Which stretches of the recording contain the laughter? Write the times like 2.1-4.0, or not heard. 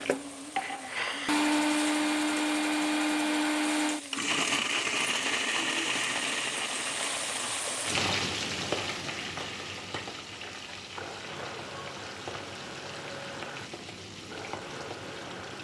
0.6-1.4.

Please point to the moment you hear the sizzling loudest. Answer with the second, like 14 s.
8 s.